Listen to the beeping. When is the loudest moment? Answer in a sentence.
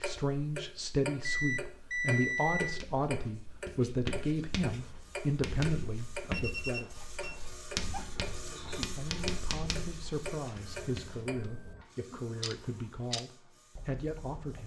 The loudest moment of the beeping is at 2 seconds.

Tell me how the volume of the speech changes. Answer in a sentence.
The loudness of the speech goes down.